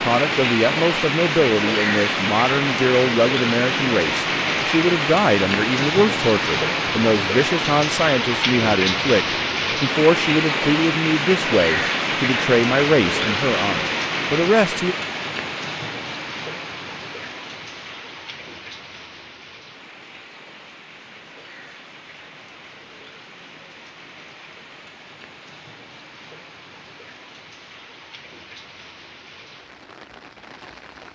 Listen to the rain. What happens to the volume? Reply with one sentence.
The loudness of the rain goes down.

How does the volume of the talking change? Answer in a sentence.
The loudness of the talking stays about the same.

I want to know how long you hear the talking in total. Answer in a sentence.
You can hear the talking for 15 seconds altogether.